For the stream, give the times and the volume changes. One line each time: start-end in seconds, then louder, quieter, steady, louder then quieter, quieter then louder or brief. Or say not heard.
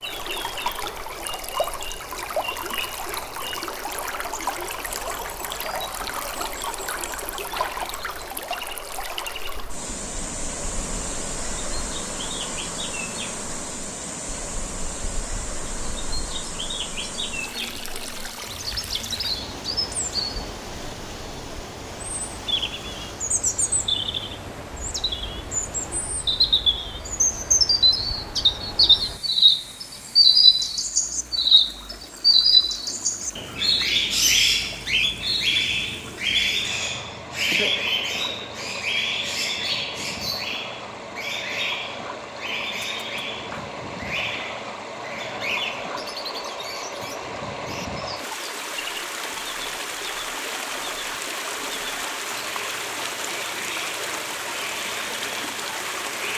0.0-56.3 quieter then louder.